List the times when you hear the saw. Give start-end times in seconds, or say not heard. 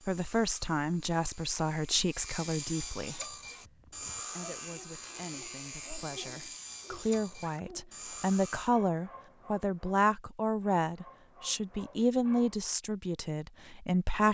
0.0-8.7.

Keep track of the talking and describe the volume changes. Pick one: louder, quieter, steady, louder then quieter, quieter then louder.
quieter then louder.